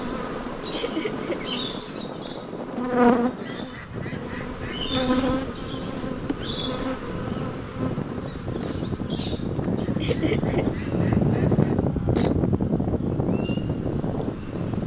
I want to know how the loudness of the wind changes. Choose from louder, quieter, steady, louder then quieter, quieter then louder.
louder.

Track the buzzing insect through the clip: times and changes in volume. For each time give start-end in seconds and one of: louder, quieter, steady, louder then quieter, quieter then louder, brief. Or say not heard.
0.0-14.8 quieter.